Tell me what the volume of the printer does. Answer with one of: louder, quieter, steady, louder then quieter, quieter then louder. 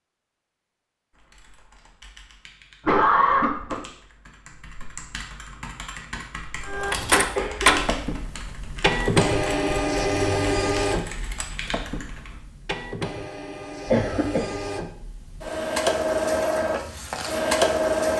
quieter then louder.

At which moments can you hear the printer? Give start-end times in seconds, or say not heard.
6.7-18.1.